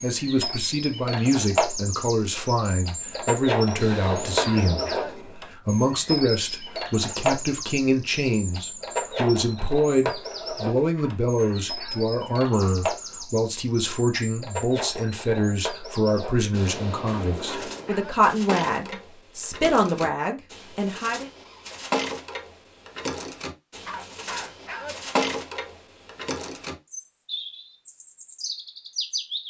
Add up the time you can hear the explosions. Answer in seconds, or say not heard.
3 s.